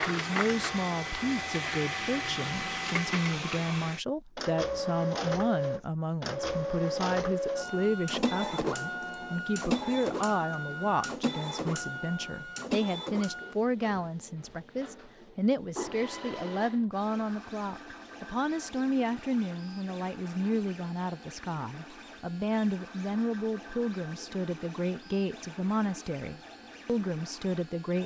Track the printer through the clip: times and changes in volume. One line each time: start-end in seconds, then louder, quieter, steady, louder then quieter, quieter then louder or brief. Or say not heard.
0.0-28.0 quieter.